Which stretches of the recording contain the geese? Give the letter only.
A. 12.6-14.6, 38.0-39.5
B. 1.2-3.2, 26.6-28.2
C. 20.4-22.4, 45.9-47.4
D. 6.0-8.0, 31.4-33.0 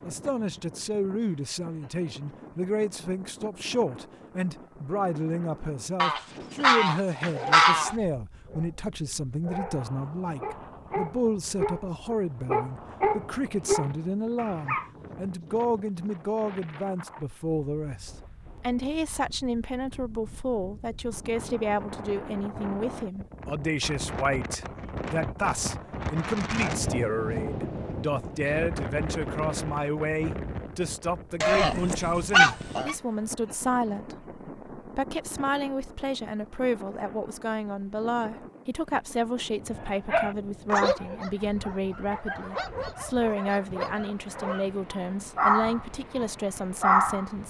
D.